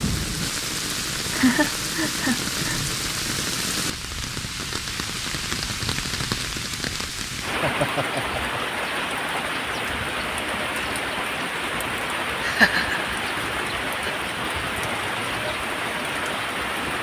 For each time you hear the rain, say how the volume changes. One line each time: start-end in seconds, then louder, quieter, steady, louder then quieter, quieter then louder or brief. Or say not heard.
0.0-16.9 steady.